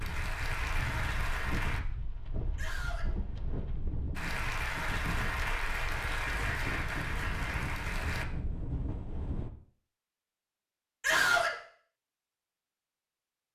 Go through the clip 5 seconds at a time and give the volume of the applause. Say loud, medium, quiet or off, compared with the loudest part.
loud, loud, off.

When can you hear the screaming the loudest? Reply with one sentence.
The loudest moment of the screaming is at 11 seconds.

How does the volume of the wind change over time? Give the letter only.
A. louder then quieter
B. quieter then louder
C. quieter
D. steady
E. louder
D.